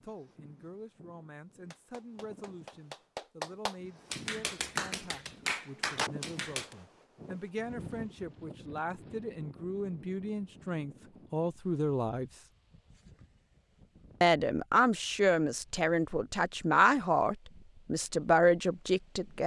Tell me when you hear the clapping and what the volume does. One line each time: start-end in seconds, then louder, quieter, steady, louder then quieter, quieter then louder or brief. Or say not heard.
1.7-6.8 louder.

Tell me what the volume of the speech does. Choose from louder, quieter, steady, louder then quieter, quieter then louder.
louder.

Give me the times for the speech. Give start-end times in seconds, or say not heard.
0.0-12.3, 14.2-19.4.